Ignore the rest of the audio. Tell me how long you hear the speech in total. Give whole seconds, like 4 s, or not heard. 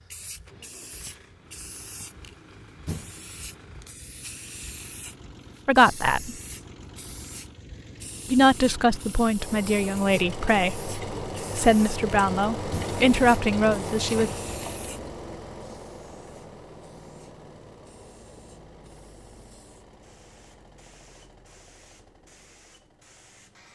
7 s.